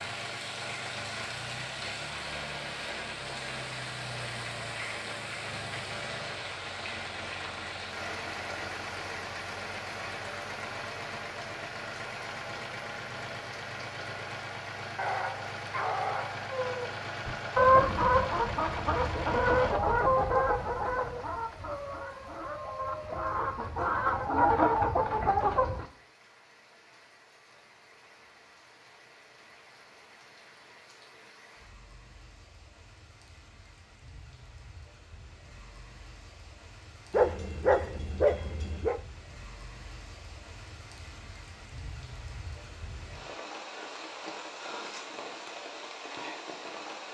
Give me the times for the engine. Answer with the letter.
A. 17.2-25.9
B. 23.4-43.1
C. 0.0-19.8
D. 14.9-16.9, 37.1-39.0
C.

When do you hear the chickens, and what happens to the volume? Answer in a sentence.
The chickens can be heard from 17.2 to 25.9 s, getting quieter then louder.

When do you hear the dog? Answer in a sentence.
The dog can be heard from 14.9 to 16.9 s and from 37.1 to 39.0 s.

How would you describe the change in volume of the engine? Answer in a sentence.
The loudness of the engine stays about the same.